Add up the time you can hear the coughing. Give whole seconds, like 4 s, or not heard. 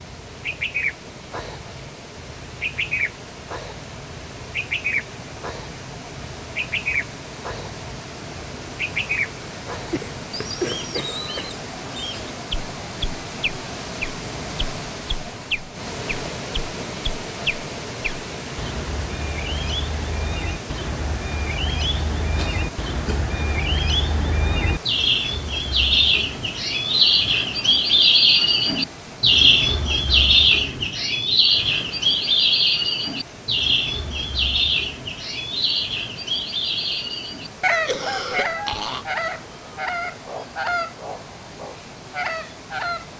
4 s.